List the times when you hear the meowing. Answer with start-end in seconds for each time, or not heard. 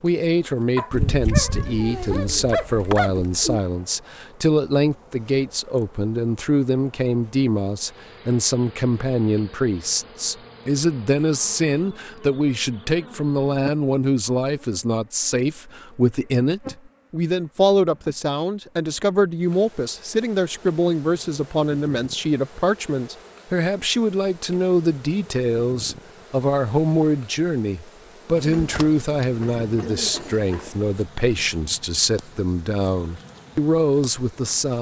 not heard.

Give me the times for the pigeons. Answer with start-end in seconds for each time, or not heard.
0.9-3.6, 28.4-30.7.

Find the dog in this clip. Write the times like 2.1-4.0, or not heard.
0.8-3.1.